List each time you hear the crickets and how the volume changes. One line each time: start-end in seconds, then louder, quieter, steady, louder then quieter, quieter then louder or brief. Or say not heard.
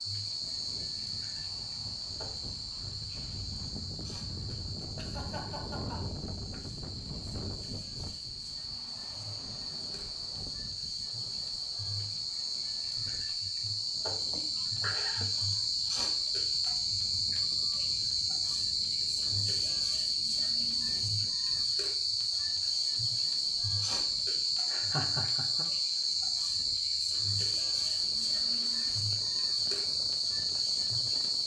0.0-31.4 louder.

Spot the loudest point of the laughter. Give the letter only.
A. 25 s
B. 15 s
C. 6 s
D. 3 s
A.